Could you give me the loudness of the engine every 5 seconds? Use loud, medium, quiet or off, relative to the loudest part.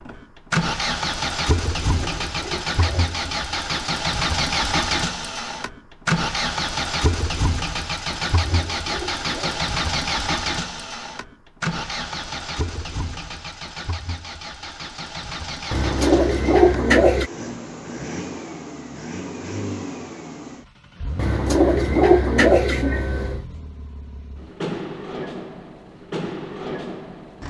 loud, loud, medium, medium, medium, medium.